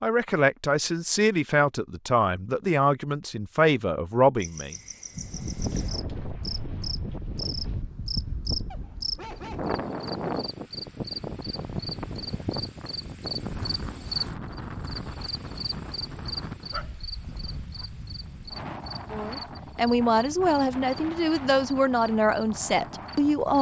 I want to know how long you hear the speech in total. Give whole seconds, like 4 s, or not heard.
9 s.